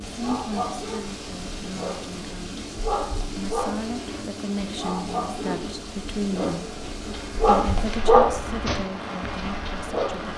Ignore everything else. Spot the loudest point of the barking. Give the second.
8 s.